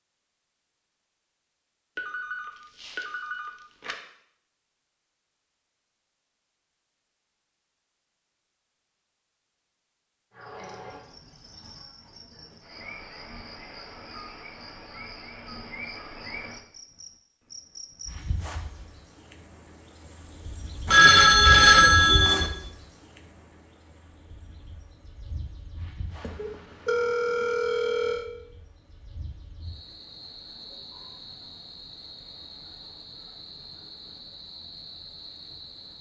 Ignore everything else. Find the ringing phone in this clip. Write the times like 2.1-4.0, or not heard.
1.9-4.0, 20.9-22.5, 26.2-28.2.